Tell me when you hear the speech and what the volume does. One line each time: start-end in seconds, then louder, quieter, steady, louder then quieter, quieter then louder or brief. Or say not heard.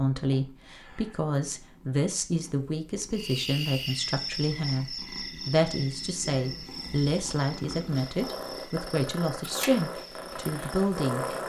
0.0-11.2 steady.